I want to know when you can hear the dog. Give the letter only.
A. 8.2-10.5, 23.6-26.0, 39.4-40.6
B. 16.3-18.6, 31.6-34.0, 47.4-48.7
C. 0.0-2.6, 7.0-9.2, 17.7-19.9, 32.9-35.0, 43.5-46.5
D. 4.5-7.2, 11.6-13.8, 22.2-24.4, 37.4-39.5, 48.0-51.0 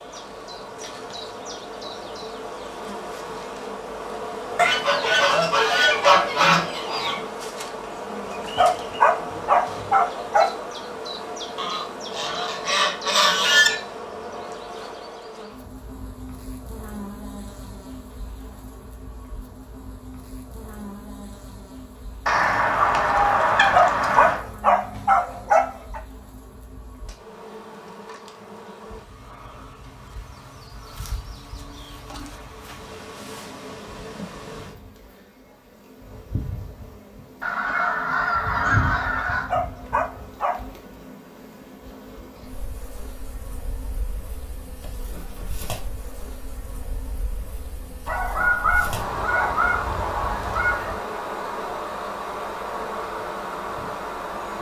A.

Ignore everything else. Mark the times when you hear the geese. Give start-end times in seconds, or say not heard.
4.5-7.2, 11.6-13.8, 22.2-24.4, 37.4-39.5, 48.0-51.0.